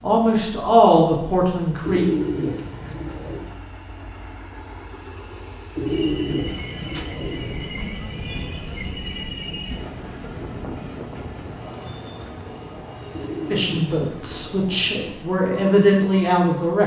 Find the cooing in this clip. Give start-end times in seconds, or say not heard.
1.8-3.5, 5.8-7.7, 13.1-15.1.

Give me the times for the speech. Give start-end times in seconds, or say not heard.
0.0-2.0, 13.5-16.8.